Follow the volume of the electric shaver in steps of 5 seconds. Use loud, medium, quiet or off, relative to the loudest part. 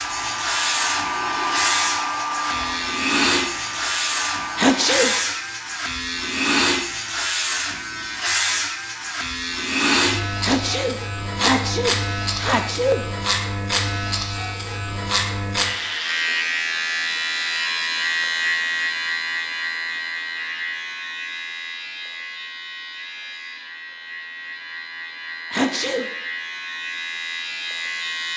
loud, loud, loud, loud, medium, medium.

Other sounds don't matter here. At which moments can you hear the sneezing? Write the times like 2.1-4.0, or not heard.
4.5-5.2, 10.4-13.1, 25.5-26.1.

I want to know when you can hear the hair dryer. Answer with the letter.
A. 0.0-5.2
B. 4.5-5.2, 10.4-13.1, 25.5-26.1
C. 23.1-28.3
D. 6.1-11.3
A.